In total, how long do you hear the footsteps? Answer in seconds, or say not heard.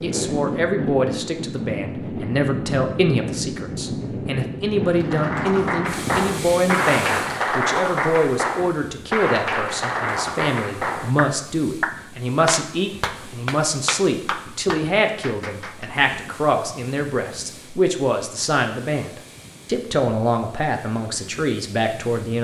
not heard.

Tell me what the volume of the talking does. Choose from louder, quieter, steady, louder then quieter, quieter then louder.
steady.